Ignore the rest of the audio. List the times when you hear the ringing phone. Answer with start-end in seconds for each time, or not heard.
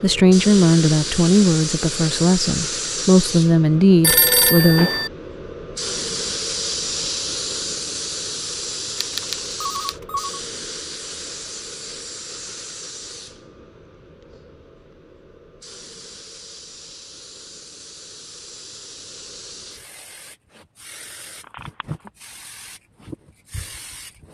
4.0-5.1, 9.0-10.4, 21.4-22.1.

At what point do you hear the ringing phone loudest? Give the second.
4 s.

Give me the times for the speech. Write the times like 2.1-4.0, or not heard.
0.0-4.9.